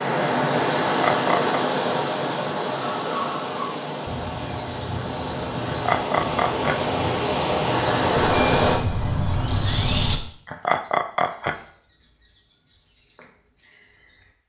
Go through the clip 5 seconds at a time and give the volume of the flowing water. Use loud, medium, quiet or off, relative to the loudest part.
loud, loud, off.